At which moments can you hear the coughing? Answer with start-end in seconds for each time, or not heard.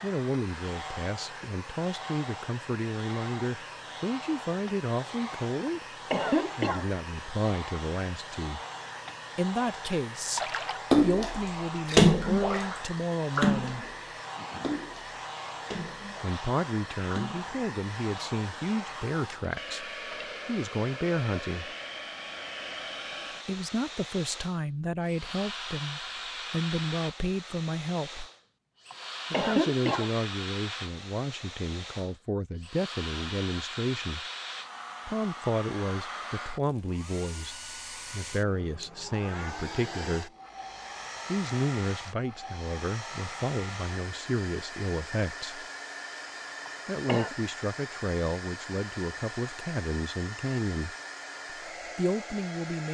5.7-6.8, 28.9-30.1, 46.6-47.4.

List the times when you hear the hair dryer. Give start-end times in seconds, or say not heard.
0.0-52.8.